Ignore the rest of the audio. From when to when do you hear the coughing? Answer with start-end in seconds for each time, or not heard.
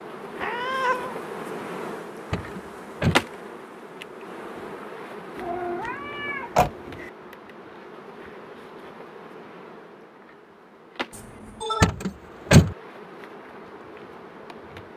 not heard.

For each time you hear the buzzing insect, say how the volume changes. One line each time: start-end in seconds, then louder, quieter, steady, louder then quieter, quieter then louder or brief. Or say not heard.
0.0-14.9 quieter.